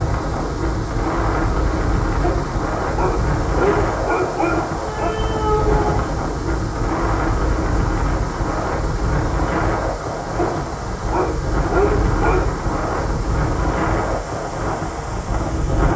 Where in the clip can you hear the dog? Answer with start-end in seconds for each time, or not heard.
2.2-5.2, 10.4-12.5.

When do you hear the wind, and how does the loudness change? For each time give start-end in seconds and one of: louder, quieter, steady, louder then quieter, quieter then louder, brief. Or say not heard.
0.0-15.9 steady.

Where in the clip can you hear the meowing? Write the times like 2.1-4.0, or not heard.
4.8-6.0.